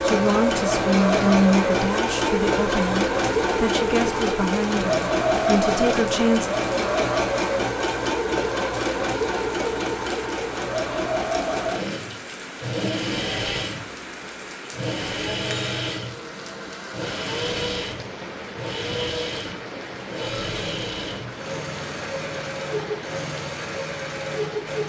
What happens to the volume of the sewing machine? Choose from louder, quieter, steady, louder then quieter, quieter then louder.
quieter.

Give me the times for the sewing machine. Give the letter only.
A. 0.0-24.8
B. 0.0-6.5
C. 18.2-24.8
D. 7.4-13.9
A.